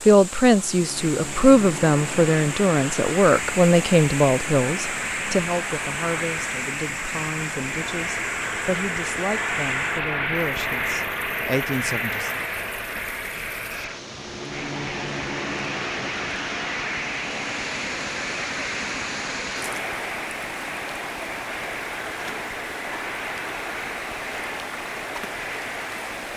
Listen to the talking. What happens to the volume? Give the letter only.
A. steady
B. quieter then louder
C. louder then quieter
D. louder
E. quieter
E.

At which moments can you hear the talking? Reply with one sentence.
You can hear the talking from 0.1 to 12.4 s.